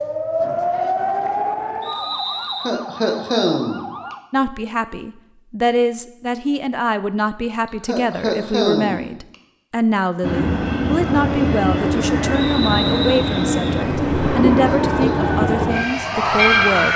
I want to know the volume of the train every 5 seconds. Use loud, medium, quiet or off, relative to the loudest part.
off, off, loud, loud.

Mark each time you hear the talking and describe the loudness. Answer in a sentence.
You can hear the talking from 4.3 to 16.9 s, at a steady volume.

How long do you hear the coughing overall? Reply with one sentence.
The coughing can be heard for 4 seconds in total.